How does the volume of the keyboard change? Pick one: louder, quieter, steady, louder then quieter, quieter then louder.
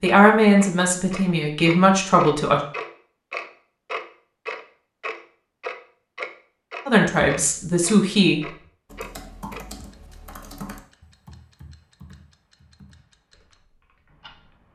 quieter.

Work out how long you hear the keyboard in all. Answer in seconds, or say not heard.
6 s.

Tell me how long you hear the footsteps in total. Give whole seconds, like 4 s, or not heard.
not heard.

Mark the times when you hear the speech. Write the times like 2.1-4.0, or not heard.
0.0-2.6, 6.8-8.4.